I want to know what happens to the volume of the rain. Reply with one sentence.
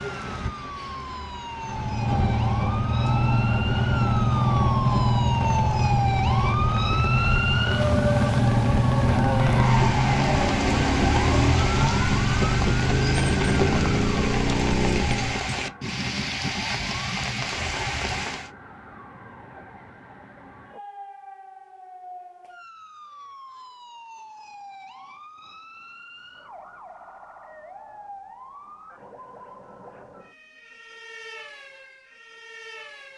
The volume of the rain goes up.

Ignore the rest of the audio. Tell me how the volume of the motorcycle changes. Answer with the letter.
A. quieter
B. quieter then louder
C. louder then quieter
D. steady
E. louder
D.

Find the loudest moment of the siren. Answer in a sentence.
The loudest moment of the siren is at 8 seconds.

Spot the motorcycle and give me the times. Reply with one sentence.
You can hear the motorcycle from 1.6 to 15.4 s.